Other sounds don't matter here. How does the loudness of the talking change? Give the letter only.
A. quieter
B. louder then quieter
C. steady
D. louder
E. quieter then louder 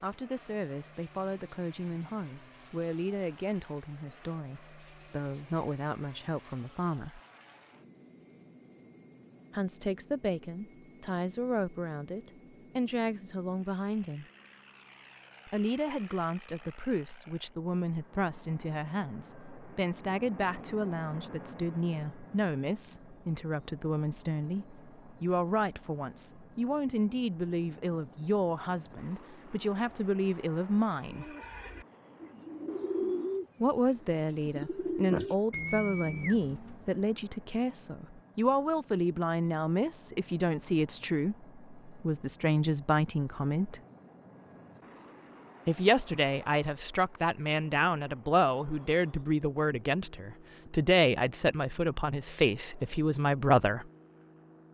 D.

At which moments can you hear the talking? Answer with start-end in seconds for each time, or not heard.
0.0-7.2, 9.5-14.2, 15.4-31.2, 33.6-43.8, 45.6-53.9.